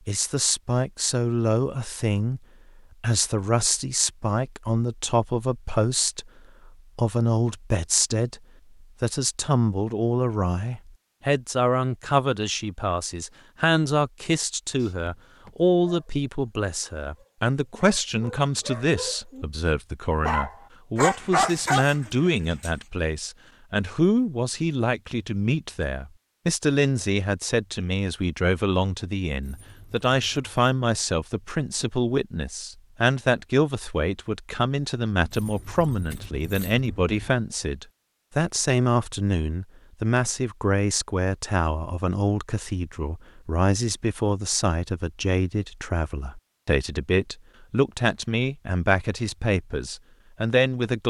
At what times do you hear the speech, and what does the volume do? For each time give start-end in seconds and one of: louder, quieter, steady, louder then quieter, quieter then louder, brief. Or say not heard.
0.1-2.4 brief
3.0-51.0 steady.